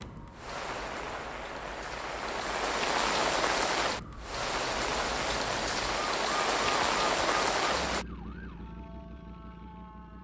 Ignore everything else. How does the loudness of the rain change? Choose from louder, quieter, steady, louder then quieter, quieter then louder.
louder.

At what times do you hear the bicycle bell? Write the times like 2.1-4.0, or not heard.
not heard.